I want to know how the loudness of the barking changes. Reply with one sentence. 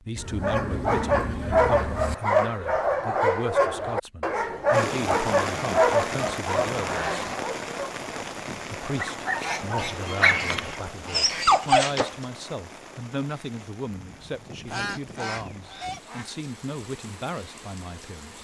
The volume of the barking goes down, then up.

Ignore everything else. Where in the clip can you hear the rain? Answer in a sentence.
You can hear the rain from 4.7 to 18.3 s.